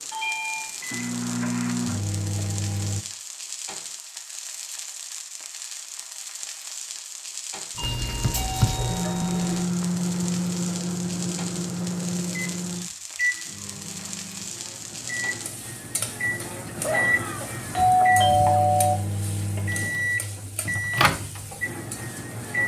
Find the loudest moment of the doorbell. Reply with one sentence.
The loudest moment of the doorbell is at 18 seconds.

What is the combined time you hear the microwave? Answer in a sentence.
The microwave can be heard for 18 seconds in total.